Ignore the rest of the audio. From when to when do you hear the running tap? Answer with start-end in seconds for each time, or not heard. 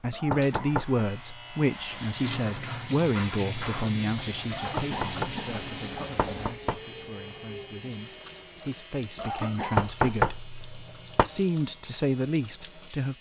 1.6-13.1.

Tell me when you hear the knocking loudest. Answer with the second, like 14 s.
10 s.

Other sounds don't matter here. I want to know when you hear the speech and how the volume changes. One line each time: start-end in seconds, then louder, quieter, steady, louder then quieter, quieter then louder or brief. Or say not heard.
0.0-10.3 quieter then louder
11.2-13.1 brief.